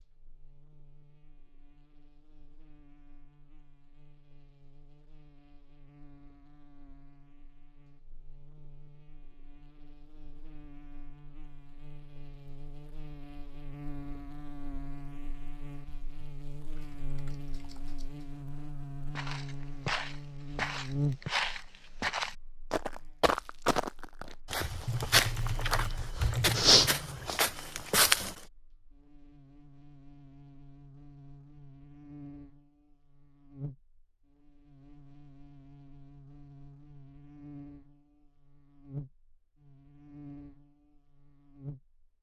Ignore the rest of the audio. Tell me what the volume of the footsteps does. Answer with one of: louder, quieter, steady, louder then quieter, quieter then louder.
louder.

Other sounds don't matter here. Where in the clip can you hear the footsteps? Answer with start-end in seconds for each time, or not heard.
19.1-28.3.